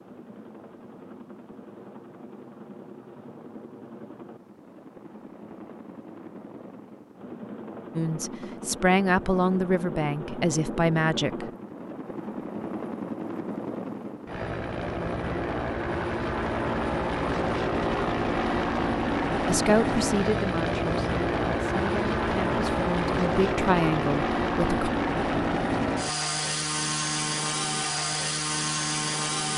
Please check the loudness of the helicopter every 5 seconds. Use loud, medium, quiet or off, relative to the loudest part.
quiet, quiet, medium, loud, loud, loud.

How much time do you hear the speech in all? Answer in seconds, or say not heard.
9 s.